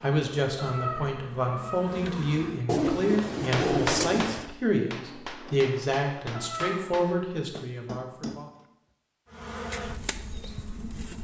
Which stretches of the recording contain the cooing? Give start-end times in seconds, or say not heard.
2.6-4.5.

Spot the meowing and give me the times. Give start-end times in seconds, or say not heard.
0.6-1.9, 6.3-6.8.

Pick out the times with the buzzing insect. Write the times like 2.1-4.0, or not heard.
0.0-2.6, 9.2-11.1.